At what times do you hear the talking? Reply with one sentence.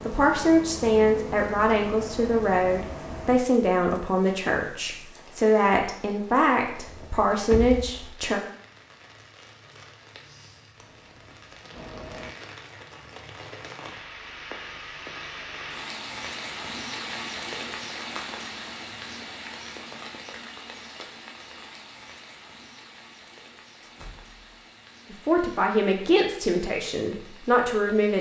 The talking can be heard from 0.1 to 8.4 s and from 25.1 to 28.1 s.